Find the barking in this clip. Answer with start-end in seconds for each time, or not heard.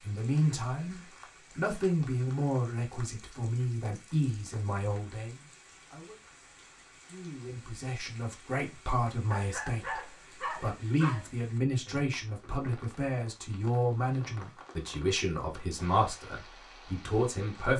9.3-11.2.